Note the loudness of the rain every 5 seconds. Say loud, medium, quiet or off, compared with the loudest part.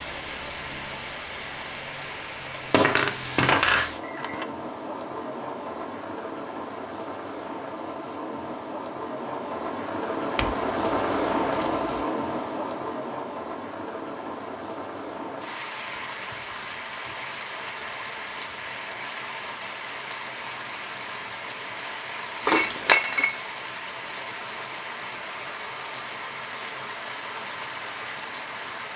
medium, medium, loud, medium, medium, medium.